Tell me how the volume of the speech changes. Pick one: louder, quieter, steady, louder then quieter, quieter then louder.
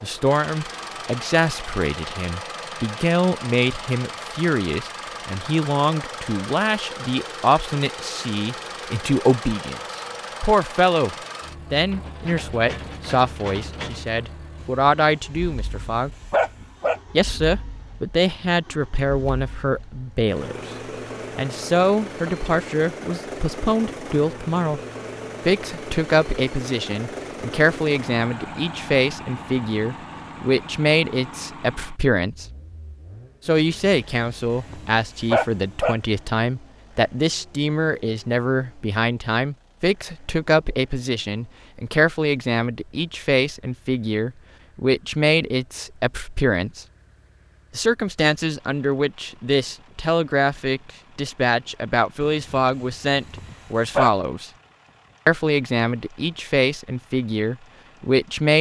steady.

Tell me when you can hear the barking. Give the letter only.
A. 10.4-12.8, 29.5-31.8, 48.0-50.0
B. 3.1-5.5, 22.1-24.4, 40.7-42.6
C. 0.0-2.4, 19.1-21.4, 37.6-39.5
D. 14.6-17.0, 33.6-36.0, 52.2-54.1
D.